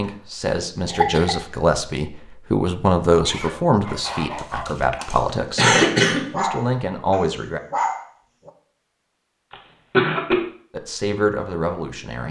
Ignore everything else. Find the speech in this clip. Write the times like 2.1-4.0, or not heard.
0.0-7.6, 10.7-12.2.